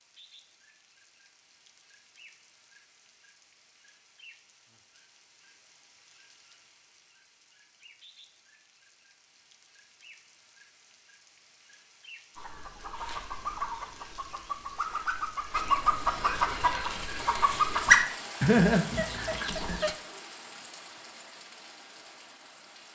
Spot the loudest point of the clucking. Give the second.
18 s.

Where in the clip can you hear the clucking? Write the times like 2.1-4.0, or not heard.
12.3-19.9.